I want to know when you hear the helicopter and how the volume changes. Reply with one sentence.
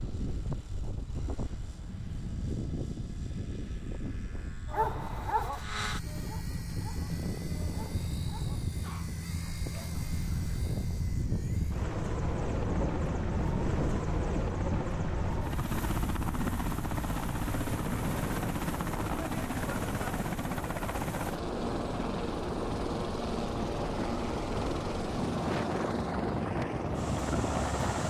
The helicopter can be heard from 0.0 to 28.0 s, getting louder.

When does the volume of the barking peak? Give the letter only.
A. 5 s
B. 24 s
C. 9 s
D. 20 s
A.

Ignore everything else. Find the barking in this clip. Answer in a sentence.
You can hear the barking from 4.7 to 9.9 s.